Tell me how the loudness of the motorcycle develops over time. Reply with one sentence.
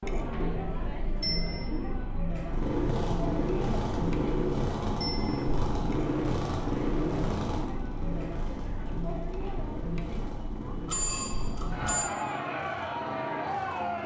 The volume of the motorcycle goes down.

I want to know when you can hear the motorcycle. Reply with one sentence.
You can hear the motorcycle from 2.5 to 14.0 s.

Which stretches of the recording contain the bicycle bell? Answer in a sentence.
You can hear the bicycle bell from 1.2 to 1.6 s, from 5.0 to 5.4 s and from 10.8 to 12.1 s.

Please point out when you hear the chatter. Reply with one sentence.
You can hear the chatter from 0.0 to 14.0 s.